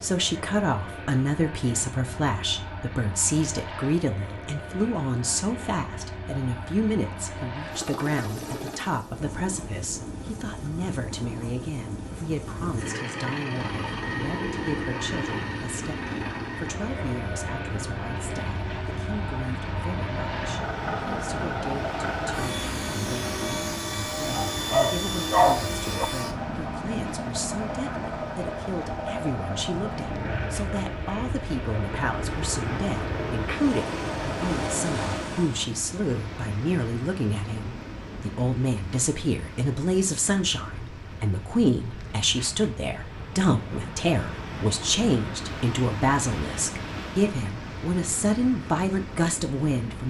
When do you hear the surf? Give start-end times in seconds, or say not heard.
13.5-50.0.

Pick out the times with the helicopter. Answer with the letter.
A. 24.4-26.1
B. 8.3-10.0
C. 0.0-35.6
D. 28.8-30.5
C.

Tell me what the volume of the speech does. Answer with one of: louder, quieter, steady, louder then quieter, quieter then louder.
quieter then louder.